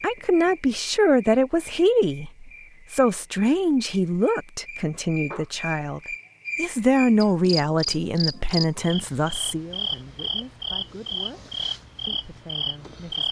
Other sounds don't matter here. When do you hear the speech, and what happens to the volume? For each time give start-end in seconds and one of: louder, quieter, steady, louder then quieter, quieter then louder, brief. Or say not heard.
0.0-13.2 quieter.